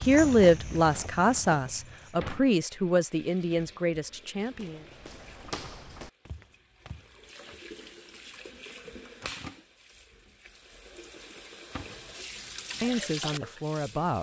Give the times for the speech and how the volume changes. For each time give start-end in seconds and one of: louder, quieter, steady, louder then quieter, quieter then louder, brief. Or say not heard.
0.0-4.8 quieter
12.8-14.1 brief.